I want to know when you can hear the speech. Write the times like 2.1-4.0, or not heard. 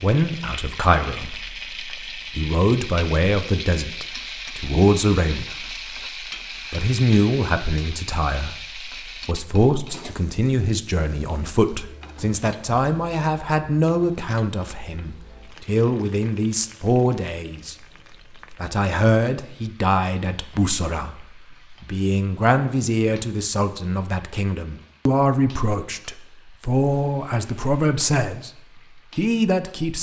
0.0-5.8, 6.7-17.8, 18.5-28.5, 29.1-29.9.